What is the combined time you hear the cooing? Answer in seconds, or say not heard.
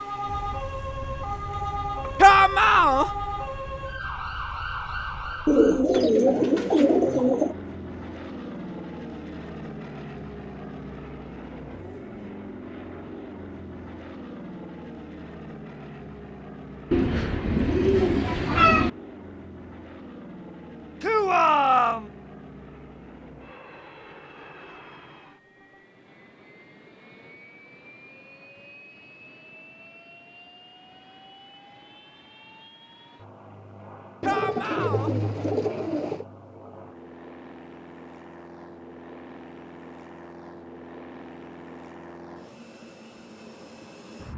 6 s.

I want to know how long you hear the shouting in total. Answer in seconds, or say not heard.
3 s.